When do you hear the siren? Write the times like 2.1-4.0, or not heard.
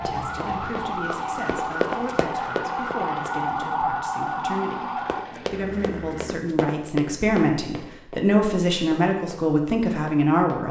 0.0-5.2.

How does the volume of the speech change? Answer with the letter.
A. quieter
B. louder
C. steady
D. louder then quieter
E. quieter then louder
B.